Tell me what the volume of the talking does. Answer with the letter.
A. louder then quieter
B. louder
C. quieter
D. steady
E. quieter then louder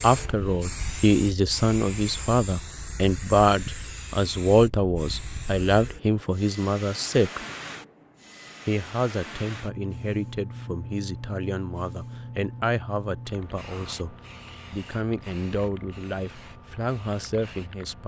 C.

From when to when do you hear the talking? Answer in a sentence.
You can hear the talking from 0.0 to 7.5 s and from 8.7 to 18.0 s.